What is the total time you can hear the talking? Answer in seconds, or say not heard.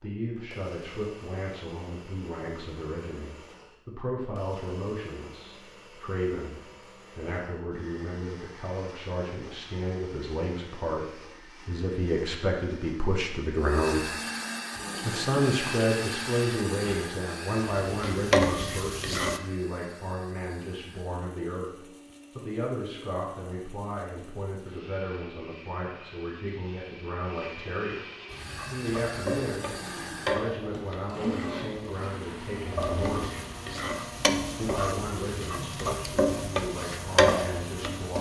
36 s.